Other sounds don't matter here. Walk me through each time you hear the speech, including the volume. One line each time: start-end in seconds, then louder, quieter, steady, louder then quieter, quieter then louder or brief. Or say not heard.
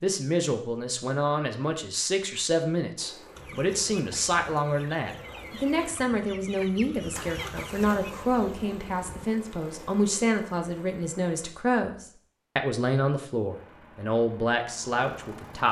0.0-15.6 steady.